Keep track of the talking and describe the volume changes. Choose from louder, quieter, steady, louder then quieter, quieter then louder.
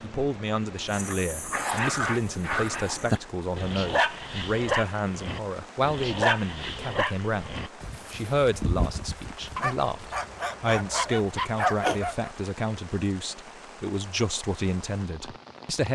steady.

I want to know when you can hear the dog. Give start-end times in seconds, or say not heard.
0.9-12.3.